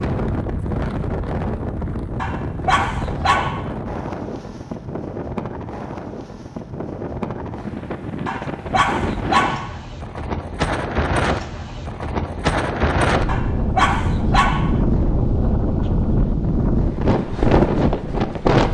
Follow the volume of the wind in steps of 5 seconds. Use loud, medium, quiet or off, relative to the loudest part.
medium, medium, loud, loud.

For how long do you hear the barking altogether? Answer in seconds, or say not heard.
5 s.